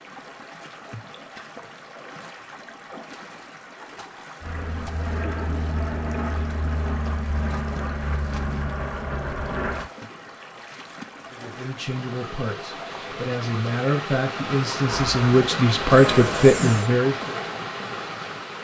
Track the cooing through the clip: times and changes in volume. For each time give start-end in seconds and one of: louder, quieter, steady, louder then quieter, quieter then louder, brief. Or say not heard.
not heard.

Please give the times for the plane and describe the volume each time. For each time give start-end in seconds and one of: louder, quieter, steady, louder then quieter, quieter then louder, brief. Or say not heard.
4.4-9.9 steady
14.8-16.9 brief.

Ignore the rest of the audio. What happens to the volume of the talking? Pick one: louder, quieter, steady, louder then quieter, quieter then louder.
louder.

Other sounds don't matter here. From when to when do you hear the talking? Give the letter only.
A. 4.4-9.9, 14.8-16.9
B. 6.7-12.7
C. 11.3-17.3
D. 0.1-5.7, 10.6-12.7
C.